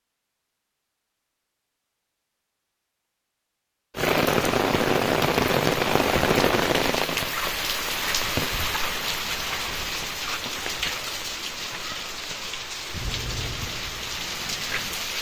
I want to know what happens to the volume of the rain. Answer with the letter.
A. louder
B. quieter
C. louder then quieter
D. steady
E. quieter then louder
B.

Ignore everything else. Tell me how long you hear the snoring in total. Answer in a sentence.
You can hear the snoring for 2 seconds altogether.